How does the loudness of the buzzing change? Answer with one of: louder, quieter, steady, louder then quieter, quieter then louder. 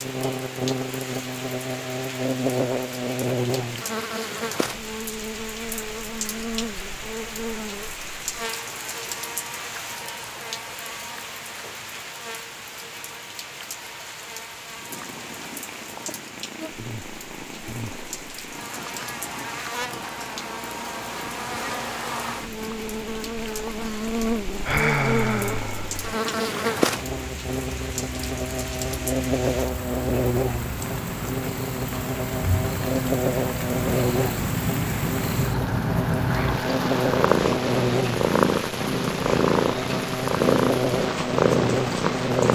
quieter then louder.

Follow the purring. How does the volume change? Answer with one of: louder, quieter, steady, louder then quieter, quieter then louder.
louder.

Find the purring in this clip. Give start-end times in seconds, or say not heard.
14.8-42.5.